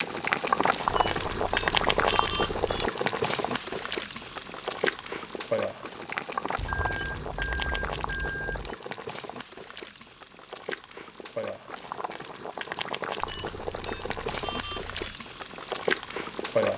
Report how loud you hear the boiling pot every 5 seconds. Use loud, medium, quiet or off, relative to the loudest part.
loud, medium, medium, loud.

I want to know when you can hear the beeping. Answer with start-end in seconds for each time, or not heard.
0.8-2.9, 6.5-8.8, 13.2-15.2.